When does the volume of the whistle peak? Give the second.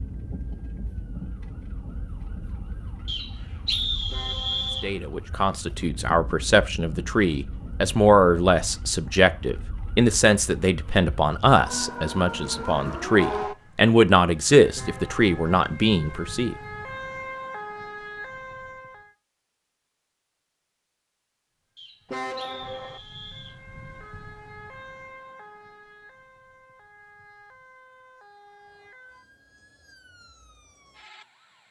4 s.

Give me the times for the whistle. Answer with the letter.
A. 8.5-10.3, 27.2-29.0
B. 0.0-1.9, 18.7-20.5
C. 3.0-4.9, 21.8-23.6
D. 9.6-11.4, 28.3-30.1
C.